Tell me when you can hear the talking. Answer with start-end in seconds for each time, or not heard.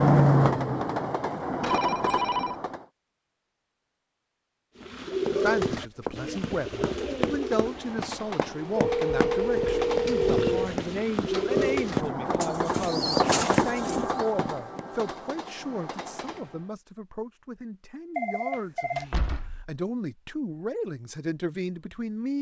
5.3-22.3.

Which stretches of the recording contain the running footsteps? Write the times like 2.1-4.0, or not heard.
5.2-14.8.